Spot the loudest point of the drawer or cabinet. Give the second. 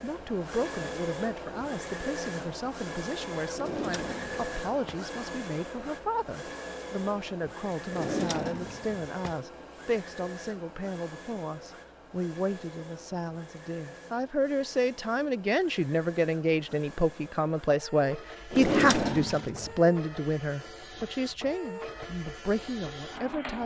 19 s.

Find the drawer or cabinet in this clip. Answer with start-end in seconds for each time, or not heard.
3.5-5.0, 7.9-9.3, 18.5-19.8.